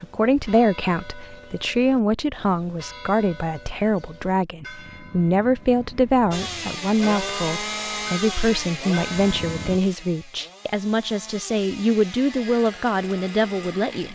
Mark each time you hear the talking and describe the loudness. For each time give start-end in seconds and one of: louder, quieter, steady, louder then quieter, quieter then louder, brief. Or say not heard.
0.0-14.1 steady.